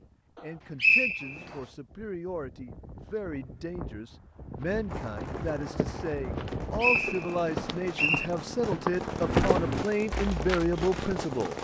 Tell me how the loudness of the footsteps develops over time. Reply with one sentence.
The loudness of the footsteps goes up.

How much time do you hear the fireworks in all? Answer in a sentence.
The fireworks can be heard for 7 seconds in total.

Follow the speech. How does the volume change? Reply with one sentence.
The volume of the speech goes up.